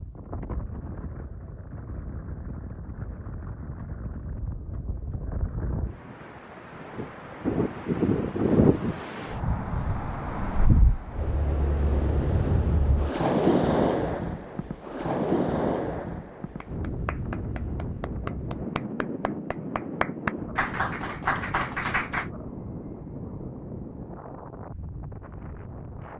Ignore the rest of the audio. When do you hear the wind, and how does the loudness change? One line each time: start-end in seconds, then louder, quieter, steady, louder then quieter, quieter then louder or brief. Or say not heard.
0.0-26.1 louder then quieter.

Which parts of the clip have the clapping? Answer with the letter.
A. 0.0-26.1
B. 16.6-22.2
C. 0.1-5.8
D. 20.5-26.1
B.